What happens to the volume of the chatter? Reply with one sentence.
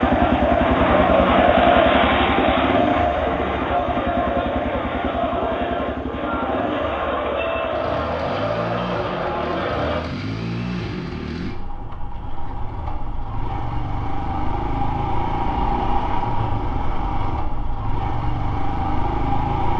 The loudness of the chatter goes down.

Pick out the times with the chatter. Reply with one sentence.
You can hear the chatter from 0.0 to 10.1 s.